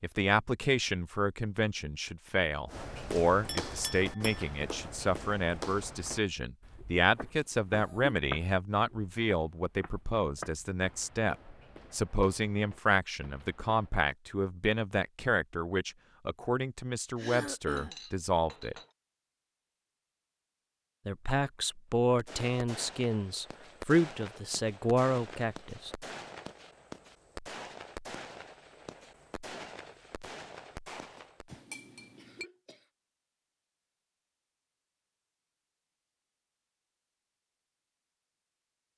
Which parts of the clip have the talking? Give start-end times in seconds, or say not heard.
0.0-18.8, 21.1-25.9.